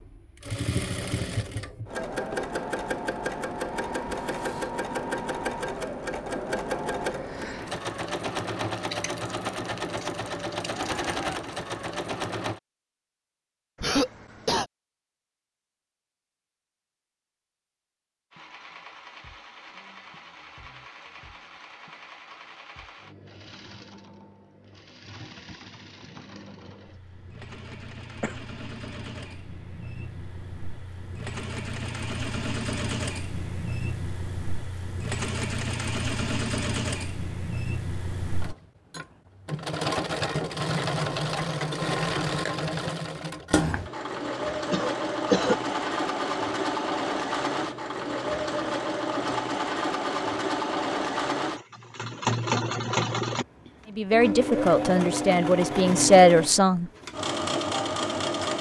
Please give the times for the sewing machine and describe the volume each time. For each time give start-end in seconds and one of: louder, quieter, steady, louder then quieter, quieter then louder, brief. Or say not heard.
0.0-12.6 steady
18.3-58.5 louder.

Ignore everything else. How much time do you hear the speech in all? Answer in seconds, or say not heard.
3 s.